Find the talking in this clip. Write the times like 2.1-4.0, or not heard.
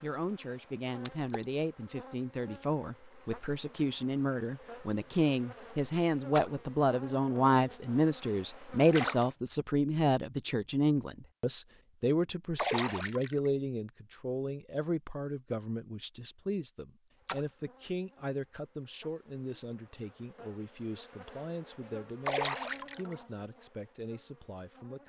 0.0-25.0.